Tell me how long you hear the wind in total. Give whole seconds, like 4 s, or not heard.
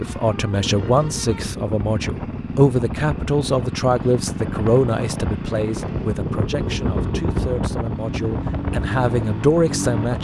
10 s.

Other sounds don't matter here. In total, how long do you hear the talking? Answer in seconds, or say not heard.
10 s.